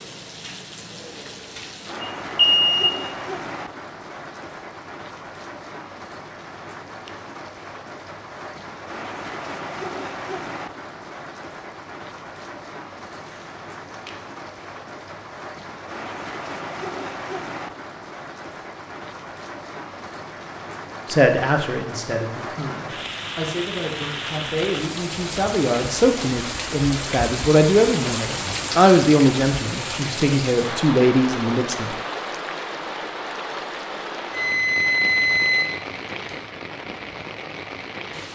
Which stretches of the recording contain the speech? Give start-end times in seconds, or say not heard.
21.1-31.9.